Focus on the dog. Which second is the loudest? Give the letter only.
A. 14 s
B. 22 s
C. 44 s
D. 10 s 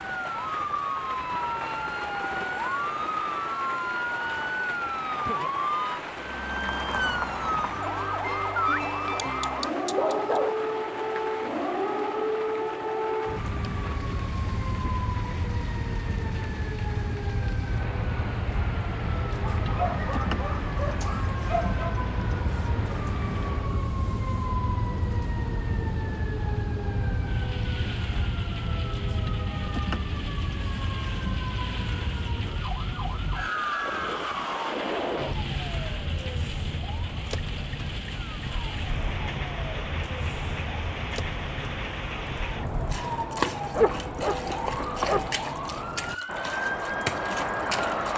C.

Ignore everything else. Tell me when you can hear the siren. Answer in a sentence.
You can hear the siren from 0.0 to 48.1 s.